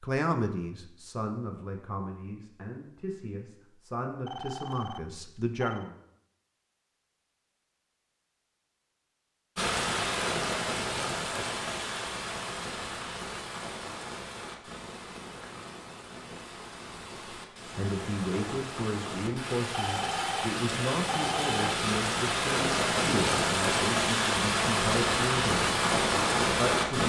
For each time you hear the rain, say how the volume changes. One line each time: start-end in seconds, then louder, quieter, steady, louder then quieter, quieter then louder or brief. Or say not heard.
9.6-27.0 quieter then louder.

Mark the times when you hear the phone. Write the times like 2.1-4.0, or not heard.
4.2-5.9, 19.7-21.7.